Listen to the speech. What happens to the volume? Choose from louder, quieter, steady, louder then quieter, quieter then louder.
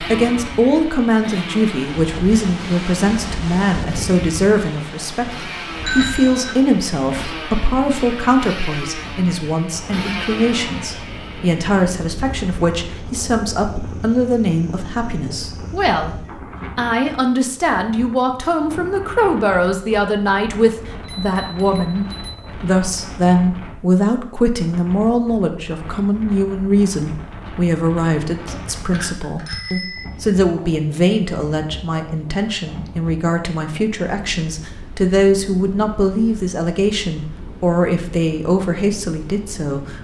steady.